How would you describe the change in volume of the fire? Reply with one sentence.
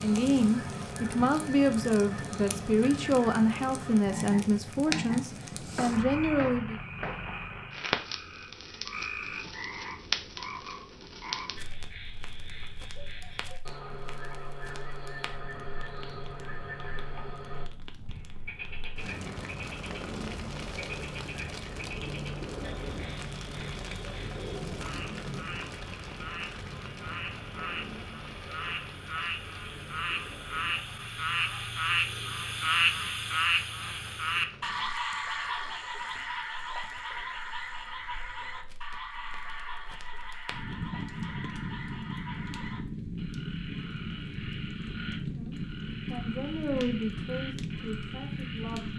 The volume of the fire goes down, then up.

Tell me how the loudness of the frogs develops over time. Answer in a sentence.
The volume of the frogs goes up, then down.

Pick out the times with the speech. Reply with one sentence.
The speech can be heard from 0.0 to 6.8 s and from 45.1 to 48.9 s.